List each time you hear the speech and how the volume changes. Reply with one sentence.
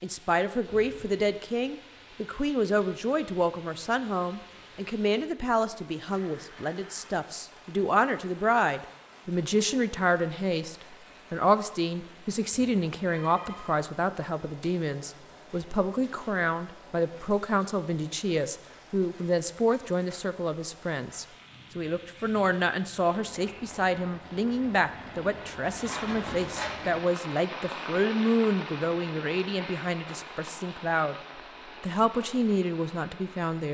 The speech can be heard from 0.0 to 31.1 s, at a steady volume; and briefly from 31.8 to 33.7 s.